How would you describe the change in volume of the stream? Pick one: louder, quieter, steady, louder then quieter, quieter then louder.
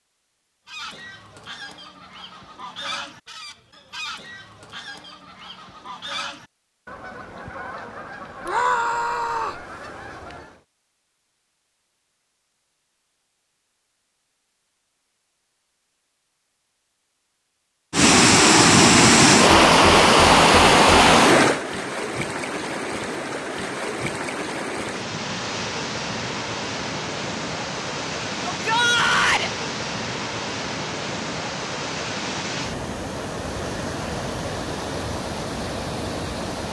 quieter.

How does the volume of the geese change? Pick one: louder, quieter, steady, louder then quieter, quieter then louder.
steady.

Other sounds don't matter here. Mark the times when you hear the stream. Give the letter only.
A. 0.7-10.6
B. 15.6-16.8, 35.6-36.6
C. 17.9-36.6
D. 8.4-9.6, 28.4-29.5
C.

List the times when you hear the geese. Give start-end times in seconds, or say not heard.
0.7-10.6.